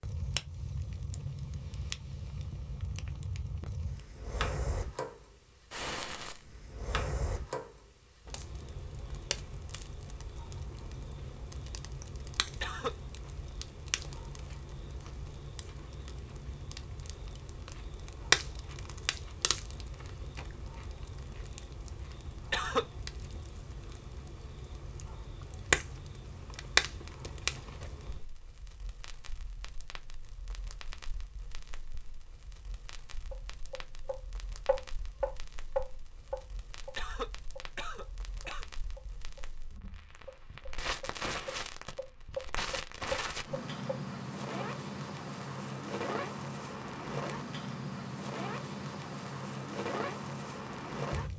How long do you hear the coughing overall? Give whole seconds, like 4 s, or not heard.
3 s.